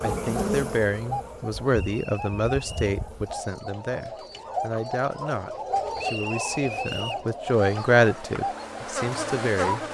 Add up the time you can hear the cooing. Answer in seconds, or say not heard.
10 s.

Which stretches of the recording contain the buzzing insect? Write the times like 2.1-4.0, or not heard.
0.0-3.4, 7.2-9.9.